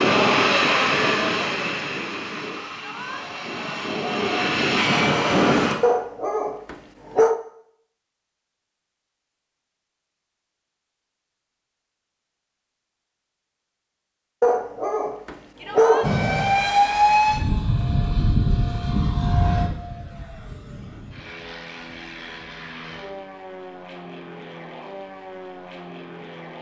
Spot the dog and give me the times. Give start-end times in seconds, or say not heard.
5.8-7.3, 14.4-16.1.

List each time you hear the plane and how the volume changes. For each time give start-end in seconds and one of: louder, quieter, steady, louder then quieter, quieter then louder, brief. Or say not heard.
0.0-5.8 quieter then louder
16.0-26.5 quieter.